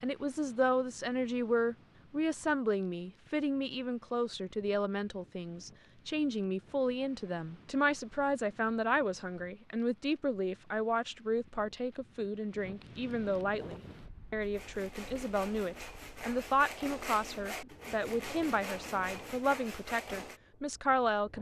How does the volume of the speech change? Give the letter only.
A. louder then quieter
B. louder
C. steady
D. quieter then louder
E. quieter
C.